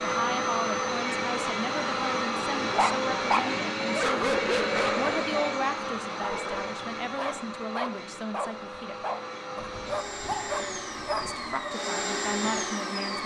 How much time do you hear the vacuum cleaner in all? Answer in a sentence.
You can hear the vacuum cleaner for 13 seconds altogether.